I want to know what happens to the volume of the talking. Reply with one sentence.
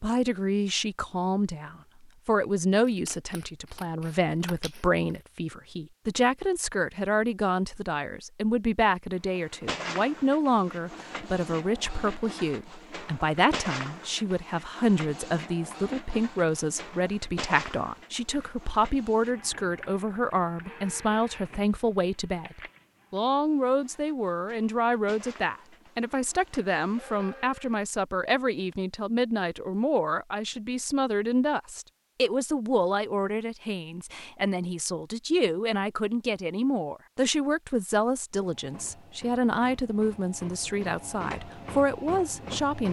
The loudness of the talking stays about the same.